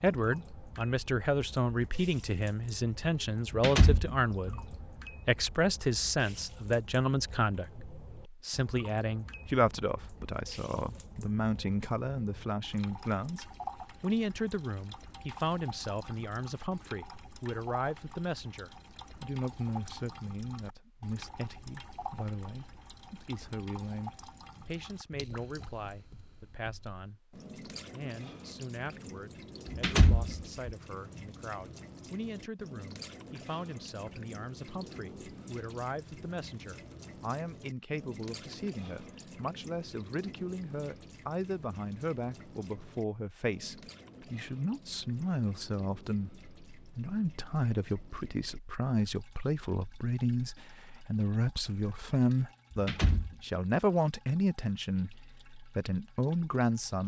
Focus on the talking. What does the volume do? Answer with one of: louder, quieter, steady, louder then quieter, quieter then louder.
quieter then louder.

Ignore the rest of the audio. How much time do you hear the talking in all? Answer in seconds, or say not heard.
57 s.